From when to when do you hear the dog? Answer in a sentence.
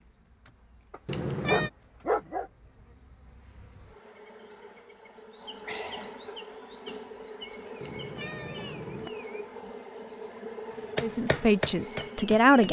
You can hear the dog from 0.9 to 2.5 s.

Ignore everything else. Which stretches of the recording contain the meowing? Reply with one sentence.
You can hear the meowing from 1.1 to 1.7 s and from 7.8 to 9.1 s.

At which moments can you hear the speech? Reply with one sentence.
The speech can be heard from 11.0 to 12.6 s.